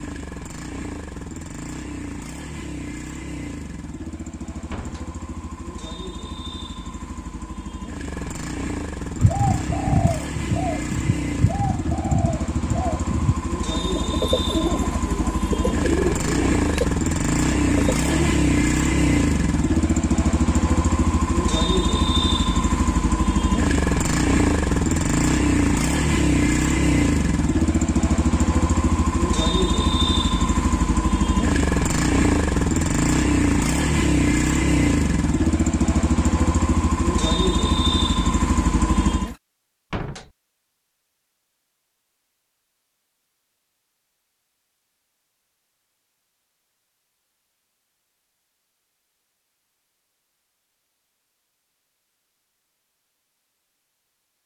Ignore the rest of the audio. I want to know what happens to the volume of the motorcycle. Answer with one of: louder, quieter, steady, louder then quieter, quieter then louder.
louder.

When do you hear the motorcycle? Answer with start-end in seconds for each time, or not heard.
0.0-39.4.